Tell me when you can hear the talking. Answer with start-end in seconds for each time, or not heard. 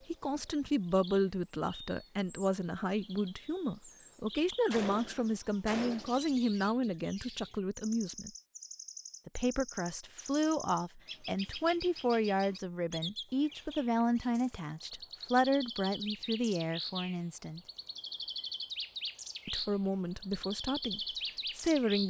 0.1-8.3, 9.2-17.6, 19.4-22.0.